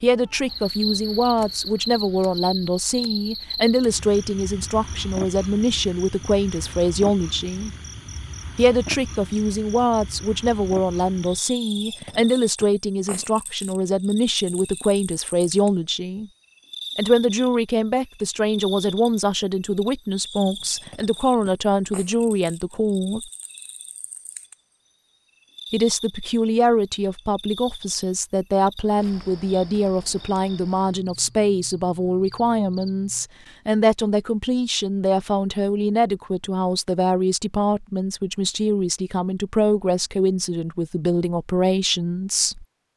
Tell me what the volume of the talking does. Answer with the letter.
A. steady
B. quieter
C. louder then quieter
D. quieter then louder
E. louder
A.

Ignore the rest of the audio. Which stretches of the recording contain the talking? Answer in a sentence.
The talking can be heard from 0.0 to 7.7 s, from 8.6 to 16.3 s, from 16.9 to 23.3 s and from 25.7 to 42.6 s.